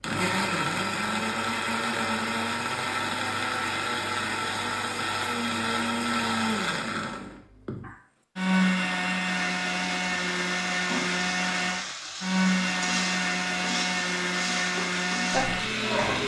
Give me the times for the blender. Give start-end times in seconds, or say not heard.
0.0-16.2.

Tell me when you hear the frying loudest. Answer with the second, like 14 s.
16 s.